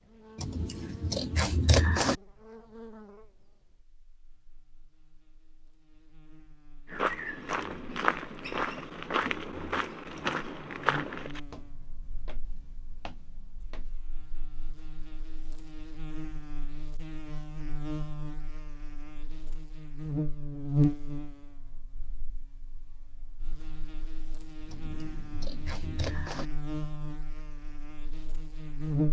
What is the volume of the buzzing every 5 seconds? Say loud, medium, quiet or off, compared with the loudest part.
quiet, quiet, quiet, medium, loud, loud.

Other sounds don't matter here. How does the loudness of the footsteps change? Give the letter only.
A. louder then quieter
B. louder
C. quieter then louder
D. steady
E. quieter
E.